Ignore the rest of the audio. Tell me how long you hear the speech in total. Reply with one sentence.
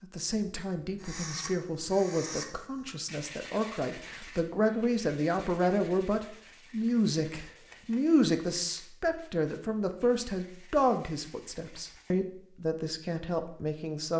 The speech can be heard for 14 seconds in total.